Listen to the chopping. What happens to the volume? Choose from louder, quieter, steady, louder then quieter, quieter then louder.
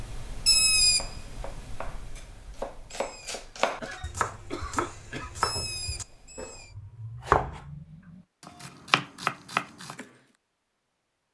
louder.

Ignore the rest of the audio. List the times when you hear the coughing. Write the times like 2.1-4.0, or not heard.
3.8-5.3.